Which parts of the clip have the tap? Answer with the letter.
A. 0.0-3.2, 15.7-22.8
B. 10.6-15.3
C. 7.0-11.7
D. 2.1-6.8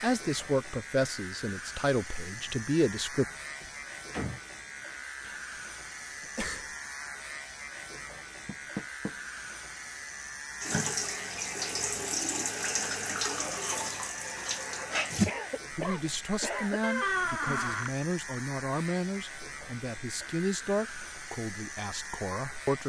B.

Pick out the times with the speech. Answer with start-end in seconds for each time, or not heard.
0.0-3.2, 15.7-22.8.